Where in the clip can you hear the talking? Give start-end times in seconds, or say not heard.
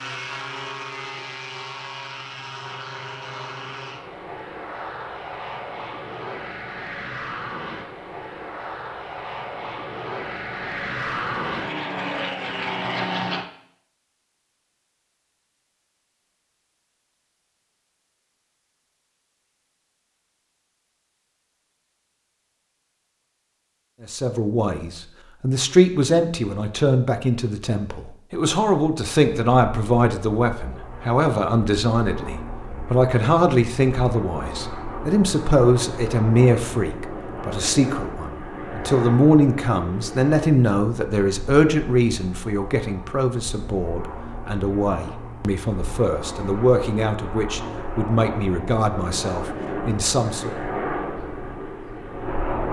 24.0-50.5.